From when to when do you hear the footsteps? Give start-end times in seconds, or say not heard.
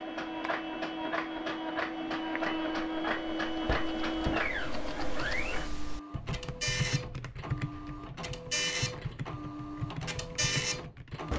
not heard.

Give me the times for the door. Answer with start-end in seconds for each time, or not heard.
3.6-4.5.